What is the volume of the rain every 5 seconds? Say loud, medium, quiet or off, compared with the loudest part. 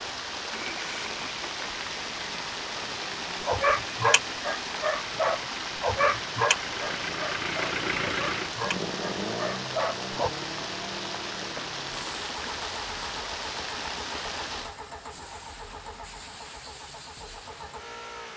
loud, loud, loud, quiet.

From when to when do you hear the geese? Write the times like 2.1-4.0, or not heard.
not heard.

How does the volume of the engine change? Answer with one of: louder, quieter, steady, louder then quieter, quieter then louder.
louder then quieter.